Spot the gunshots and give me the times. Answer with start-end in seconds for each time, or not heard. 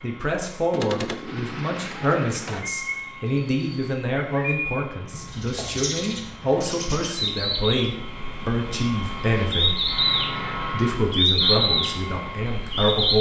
0.7-2.7.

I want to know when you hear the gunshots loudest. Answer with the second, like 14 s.
1 s.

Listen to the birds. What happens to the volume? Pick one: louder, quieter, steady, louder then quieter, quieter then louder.
louder.